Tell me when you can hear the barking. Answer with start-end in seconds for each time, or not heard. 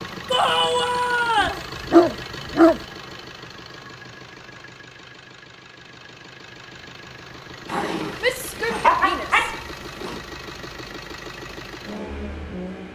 1.4-2.8, 7.7-10.2.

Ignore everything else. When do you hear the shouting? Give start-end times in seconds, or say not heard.
0.3-1.6, 8.2-9.5.